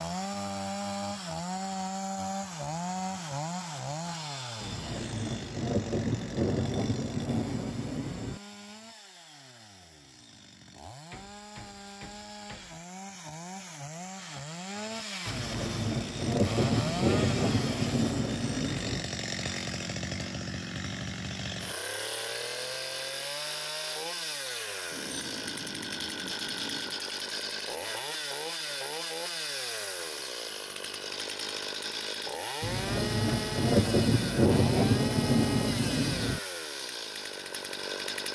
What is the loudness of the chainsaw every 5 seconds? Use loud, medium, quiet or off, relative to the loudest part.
loud, medium, medium, loud, loud, loud, loud, loud.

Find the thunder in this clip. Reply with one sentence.
You can hear the thunder from 4.6 to 8.4 s, from 15.2 to 19.1 s and from 32.6 to 36.4 s.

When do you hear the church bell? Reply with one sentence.
You can't hear the church bell here.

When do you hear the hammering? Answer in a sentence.
You can hear the hammering from 11.1 to 12.8 s and from 24.9 to 27.0 s.